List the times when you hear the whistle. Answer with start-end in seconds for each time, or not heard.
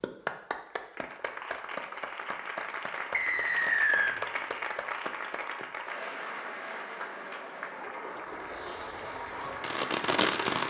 3.1-4.2.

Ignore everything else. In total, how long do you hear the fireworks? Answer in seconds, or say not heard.
2 s.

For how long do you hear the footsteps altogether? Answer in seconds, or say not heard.
not heard.